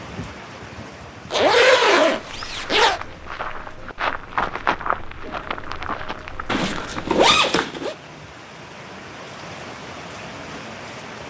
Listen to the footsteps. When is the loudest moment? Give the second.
5 s.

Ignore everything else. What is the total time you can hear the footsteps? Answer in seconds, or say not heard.
5 s.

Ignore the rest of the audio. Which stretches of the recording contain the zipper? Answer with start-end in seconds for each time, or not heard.
1.3-3.0, 6.5-8.0.